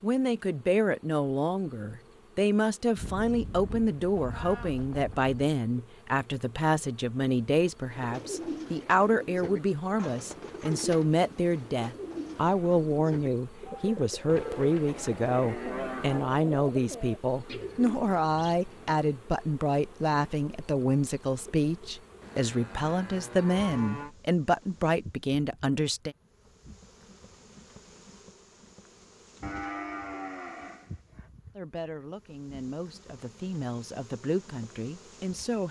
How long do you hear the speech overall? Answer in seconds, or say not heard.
30 s.